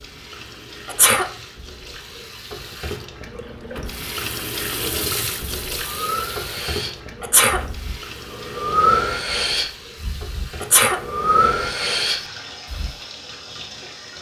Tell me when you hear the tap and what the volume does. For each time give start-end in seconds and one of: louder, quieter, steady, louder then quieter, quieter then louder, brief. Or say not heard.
0.0-14.1 louder then quieter.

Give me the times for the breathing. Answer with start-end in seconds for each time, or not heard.
5.7-12.9.